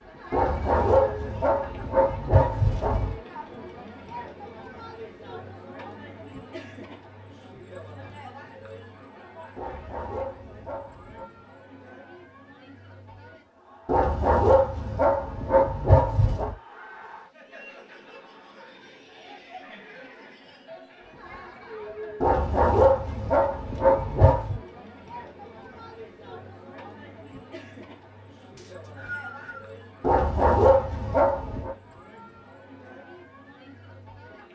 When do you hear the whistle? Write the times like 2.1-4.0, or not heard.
28.6-29.7.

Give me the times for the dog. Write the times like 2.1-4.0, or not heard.
0.3-3.2, 9.6-11.2, 13.8-16.6, 22.2-24.6, 30.0-31.8.